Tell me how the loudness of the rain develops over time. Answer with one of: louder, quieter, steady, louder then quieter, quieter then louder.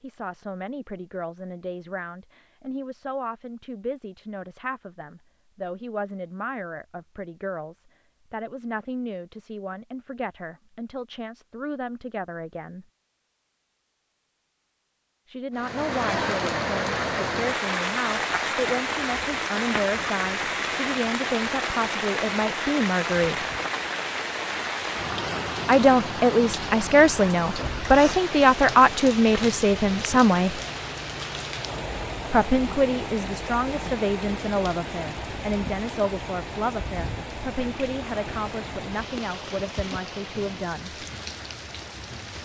quieter.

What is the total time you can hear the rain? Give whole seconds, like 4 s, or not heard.
27 s.